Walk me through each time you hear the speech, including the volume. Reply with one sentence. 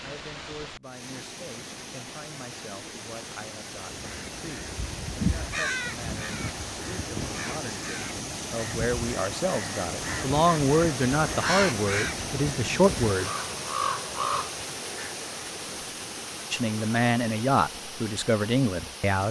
You can hear the speech from 0.0 to 13.3 s, getting louder; and briefly from 16.5 to 19.2 s.